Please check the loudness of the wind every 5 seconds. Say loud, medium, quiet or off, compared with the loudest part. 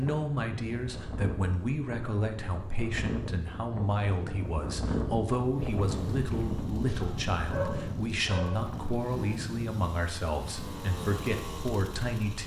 loud, loud, medium.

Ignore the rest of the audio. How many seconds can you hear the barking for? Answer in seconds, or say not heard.
2 s.